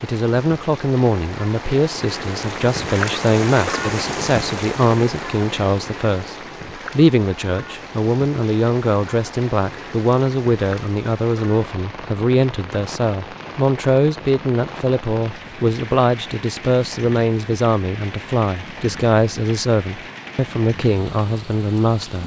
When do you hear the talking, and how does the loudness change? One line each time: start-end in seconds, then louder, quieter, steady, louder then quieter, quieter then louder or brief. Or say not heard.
0.0-22.2 steady.